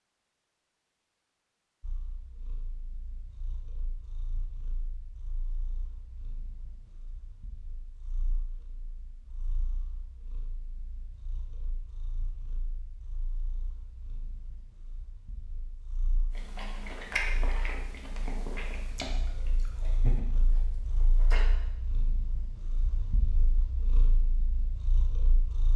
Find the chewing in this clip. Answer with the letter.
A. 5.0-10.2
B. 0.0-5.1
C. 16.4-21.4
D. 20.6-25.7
C.